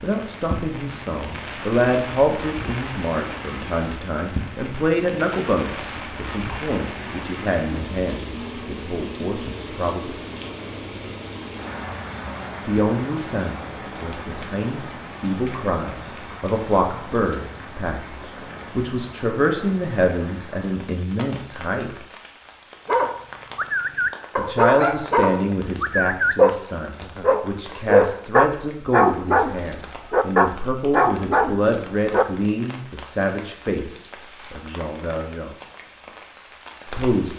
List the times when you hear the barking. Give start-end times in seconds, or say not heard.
22.9-32.2.